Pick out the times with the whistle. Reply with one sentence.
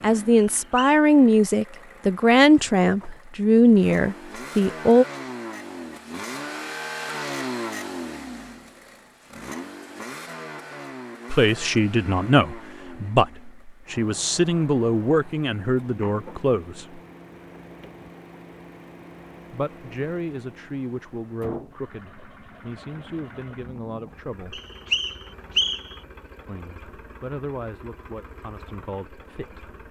You can hear the whistle from 0.6 to 1.0 s and from 24.5 to 25.9 s.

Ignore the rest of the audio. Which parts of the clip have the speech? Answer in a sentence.
You can hear the speech from 0.0 to 5.0 s, from 11.3 to 17.0 s, from 19.5 to 24.6 s and from 26.4 to 29.6 s.